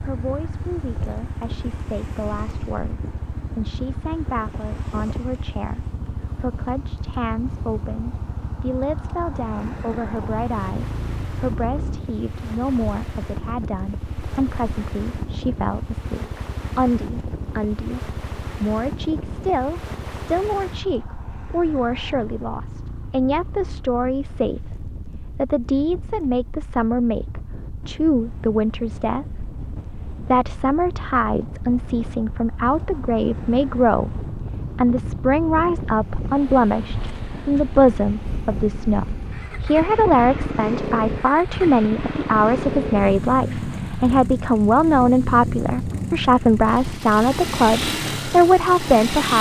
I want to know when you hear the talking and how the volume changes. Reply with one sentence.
The talking can be heard from 0.0 to 49.3 s, getting louder.